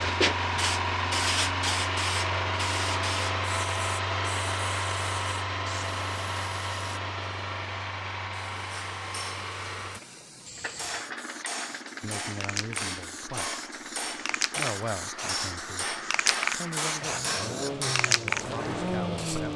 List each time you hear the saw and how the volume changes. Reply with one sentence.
The saw can't be heard in this clip.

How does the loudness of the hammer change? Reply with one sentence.
The volume of the hammer goes up.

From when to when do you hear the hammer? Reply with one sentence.
The hammer can be heard from 8.7 to 18.1 s.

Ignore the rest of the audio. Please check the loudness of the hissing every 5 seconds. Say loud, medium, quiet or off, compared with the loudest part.
loud, quiet, medium, loud.